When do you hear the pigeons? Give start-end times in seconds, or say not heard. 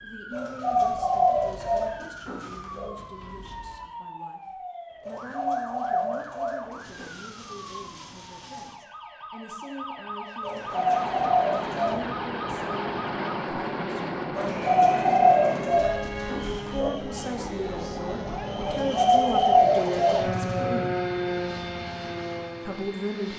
0.3-3.0, 5.0-7.1, 10.4-12.0, 14.3-16.9, 18.6-20.7.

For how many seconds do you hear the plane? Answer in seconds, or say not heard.
13 s.